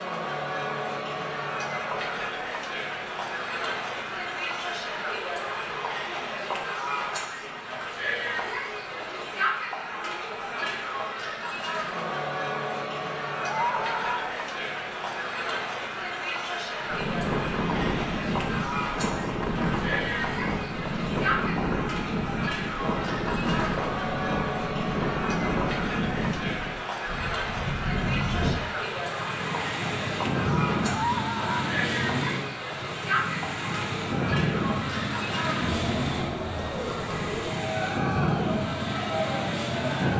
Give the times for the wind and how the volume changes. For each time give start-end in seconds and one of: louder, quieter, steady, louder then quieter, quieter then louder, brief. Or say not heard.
16.8-40.1 steady.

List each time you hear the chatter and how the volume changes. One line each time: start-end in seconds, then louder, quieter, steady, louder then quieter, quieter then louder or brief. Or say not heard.
0.0-40.1 steady.